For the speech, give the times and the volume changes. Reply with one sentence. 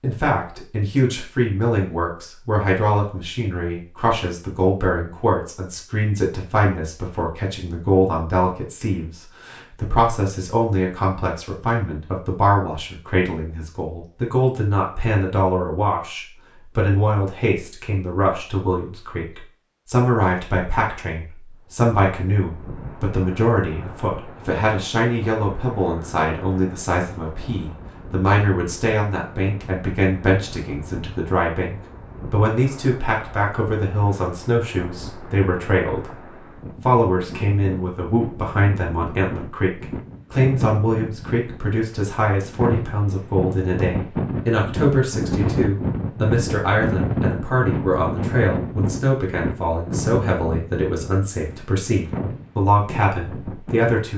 You can hear the speech from 0.0 to 36.1 s, at a steady volume; and from 36.9 to 54.1 s, at a steady volume.